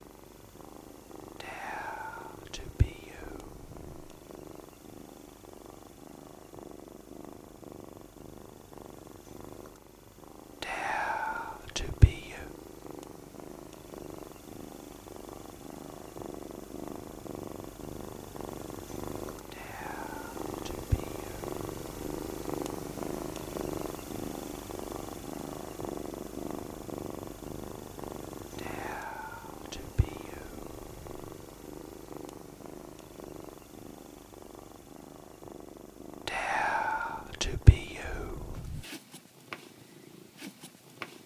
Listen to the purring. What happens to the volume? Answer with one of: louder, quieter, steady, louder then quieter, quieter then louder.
louder then quieter.